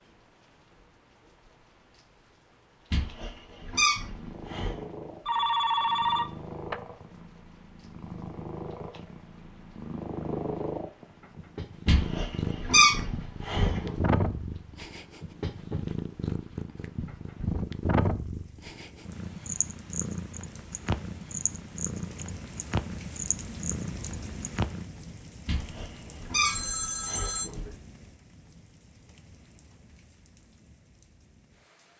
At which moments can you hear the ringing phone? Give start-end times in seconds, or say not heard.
5.2-6.8, 26.4-27.5.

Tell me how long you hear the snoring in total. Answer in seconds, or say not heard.
not heard.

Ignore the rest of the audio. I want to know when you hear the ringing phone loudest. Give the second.
6 s.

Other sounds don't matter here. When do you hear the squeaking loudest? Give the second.
13 s.